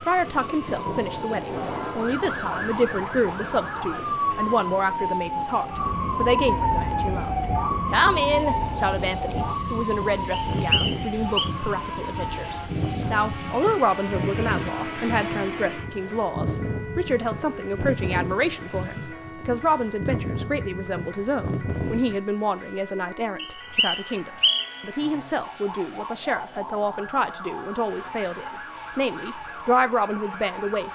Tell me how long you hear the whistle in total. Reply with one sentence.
The whistle can be heard for 3 seconds in total.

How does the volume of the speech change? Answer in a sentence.
The volume of the speech stays about the same.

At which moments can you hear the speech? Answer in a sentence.
You can hear the speech from 0.0 to 30.9 s.